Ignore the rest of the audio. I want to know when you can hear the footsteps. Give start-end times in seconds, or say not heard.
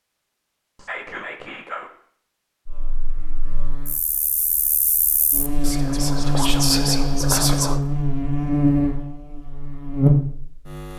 not heard.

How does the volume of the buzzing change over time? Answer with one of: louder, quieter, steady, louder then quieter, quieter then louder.
louder.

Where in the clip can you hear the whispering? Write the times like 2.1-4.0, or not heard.
0.8-1.9, 5.6-7.8.